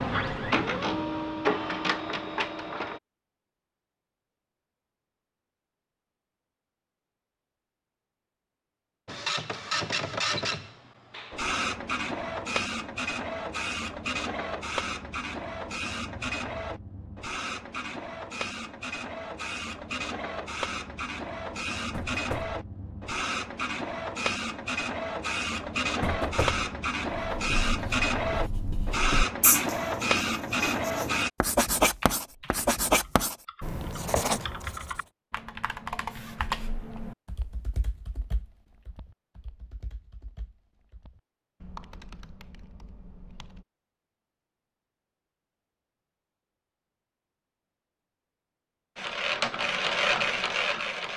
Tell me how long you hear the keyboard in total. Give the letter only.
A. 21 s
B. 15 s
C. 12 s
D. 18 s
C.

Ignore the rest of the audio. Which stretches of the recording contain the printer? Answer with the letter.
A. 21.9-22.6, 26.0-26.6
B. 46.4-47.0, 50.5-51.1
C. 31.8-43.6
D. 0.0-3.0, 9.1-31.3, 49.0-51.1
D.